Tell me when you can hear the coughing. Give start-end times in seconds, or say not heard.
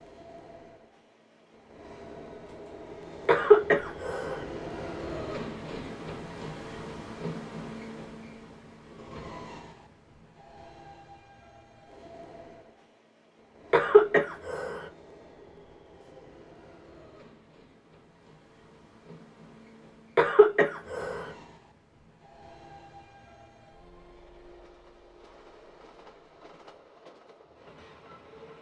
3.2-4.5, 13.7-14.8, 20.1-21.3.